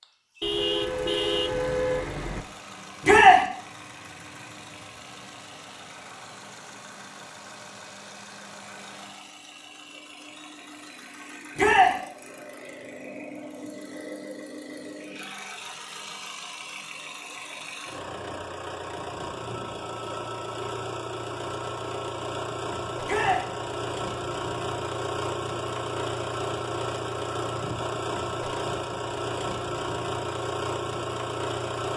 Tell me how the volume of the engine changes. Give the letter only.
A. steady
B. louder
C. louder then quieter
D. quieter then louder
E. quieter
B.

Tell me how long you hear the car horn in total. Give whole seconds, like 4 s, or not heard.
2 s.